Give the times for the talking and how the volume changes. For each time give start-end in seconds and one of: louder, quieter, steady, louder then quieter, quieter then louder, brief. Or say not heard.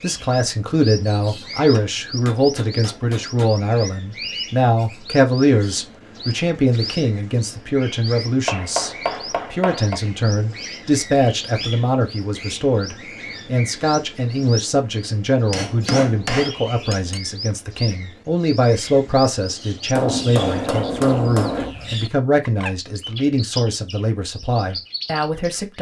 0.0-25.7 steady.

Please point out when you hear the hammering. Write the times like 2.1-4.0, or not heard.
1.6-3.5, 8.4-10.0, 15.5-17.2, 19.9-21.8.